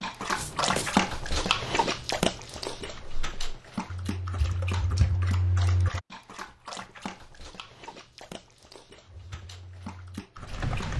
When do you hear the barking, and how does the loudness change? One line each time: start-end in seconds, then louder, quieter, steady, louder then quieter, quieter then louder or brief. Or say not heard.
0.0-10.9 quieter.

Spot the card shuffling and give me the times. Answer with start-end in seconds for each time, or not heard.
0.3-0.9.